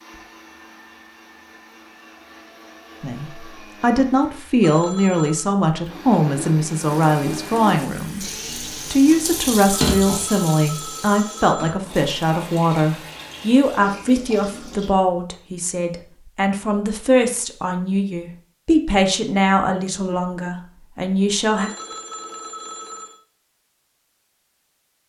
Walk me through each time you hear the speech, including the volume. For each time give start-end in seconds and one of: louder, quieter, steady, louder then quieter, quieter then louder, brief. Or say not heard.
3.0-21.7 steady.